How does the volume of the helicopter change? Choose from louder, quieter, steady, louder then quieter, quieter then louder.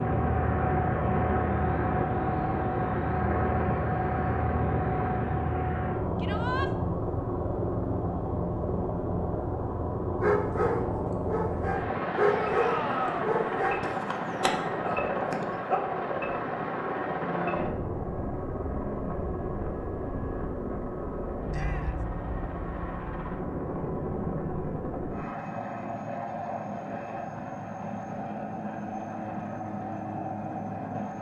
quieter.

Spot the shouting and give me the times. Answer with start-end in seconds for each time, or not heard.
6.2-6.7, 12.2-13.3, 21.5-22.1.